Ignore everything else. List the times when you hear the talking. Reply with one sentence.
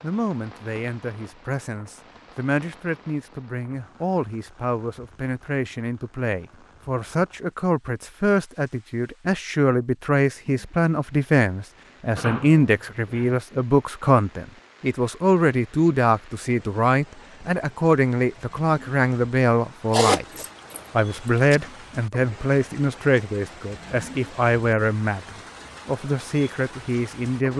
The talking can be heard from 0.0 to 27.5 s.